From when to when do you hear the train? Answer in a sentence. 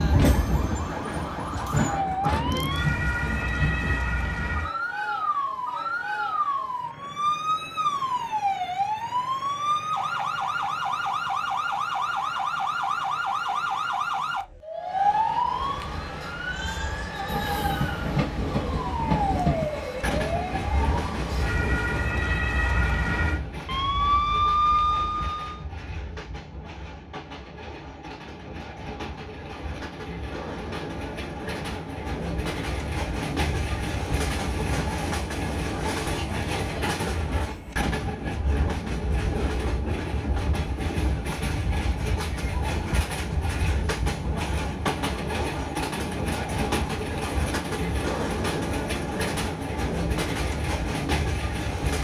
The train can be heard from 0.0 to 4.0 s and from 17.2 to 52.0 s.